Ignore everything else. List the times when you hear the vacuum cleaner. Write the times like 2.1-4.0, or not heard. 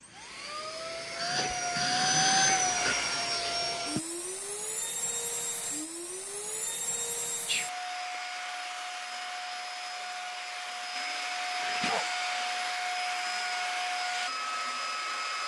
0.0-15.4.